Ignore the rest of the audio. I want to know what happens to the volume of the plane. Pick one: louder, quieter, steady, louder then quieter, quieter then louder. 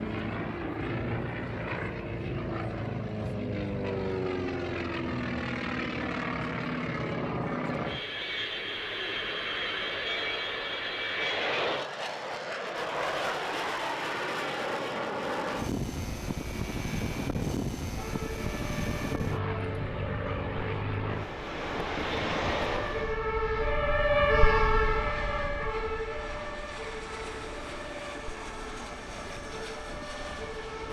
quieter.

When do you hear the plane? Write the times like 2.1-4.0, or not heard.
0.0-30.8.